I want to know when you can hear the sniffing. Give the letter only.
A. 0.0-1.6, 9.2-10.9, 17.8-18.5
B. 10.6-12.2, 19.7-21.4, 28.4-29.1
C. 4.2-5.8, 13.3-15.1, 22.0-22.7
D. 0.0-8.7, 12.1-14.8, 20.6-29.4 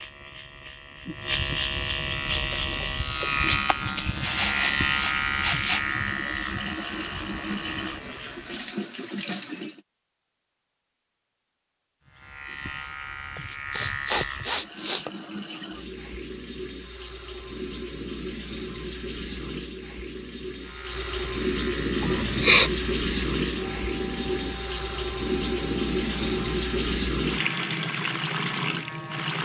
C.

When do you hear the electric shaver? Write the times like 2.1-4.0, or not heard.
0.0-8.7, 12.1-14.8, 20.6-29.4.